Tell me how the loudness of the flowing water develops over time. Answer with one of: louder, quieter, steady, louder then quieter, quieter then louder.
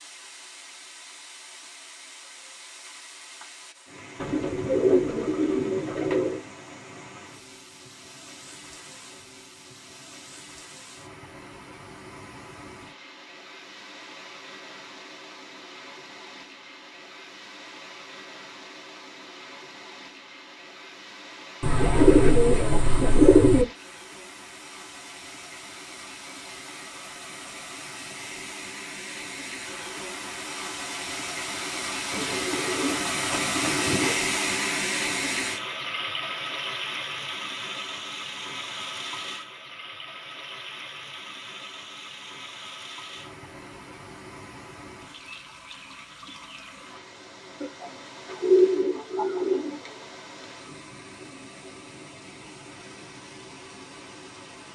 louder then quieter.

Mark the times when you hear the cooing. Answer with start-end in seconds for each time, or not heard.
4.2-6.4, 21.6-23.6, 32.1-34.1, 47.6-50.0.